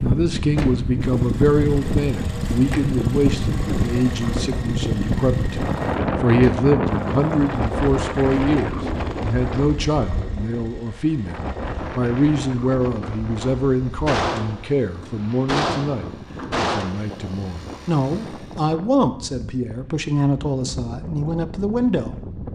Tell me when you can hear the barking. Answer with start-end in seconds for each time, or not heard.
not heard.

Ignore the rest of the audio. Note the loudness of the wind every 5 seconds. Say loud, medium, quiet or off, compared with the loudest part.
loud, loud, medium, quiet, medium.